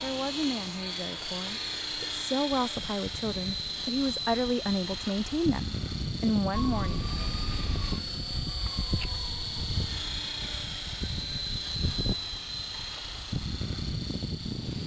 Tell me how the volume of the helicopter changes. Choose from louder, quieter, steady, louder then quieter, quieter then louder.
steady.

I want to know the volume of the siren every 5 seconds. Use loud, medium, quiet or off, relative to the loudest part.
off, loud, loud.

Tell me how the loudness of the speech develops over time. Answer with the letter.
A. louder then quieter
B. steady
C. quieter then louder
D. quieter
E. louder
E.